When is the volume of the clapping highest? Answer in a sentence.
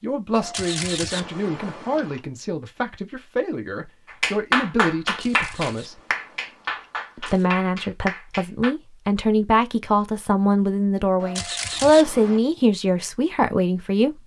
The loudest moment of the clapping is at 5 seconds.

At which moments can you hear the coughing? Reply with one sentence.
The coughing can't be heard in this clip.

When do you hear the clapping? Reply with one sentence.
The clapping can be heard from 4.2 to 8.7 s.